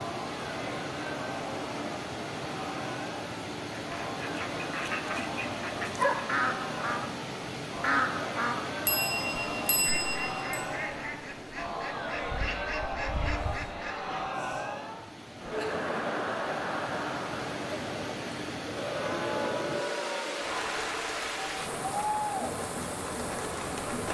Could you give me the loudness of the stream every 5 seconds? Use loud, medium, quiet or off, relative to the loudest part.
loud, loud, medium, loud, loud.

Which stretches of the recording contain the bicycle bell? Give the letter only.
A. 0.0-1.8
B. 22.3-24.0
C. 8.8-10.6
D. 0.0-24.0
C.